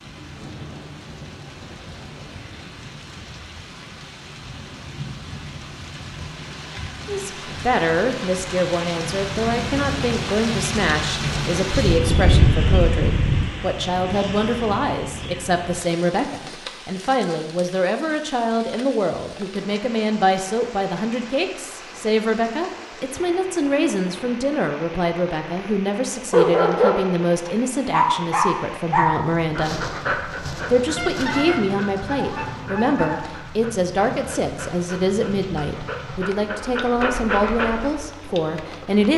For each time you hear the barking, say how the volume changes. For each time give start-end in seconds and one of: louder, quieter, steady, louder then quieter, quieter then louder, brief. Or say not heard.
26.3-38.1 quieter then louder.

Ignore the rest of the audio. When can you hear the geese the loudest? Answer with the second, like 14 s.
12 s.